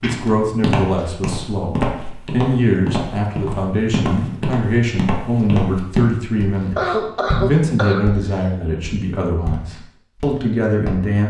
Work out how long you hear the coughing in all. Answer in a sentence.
You can hear the coughing for 3 seconds altogether.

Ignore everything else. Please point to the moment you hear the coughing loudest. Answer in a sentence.
The volume of the coughing peaks at 7 seconds.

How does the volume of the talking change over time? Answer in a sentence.
The volume of the talking stays about the same.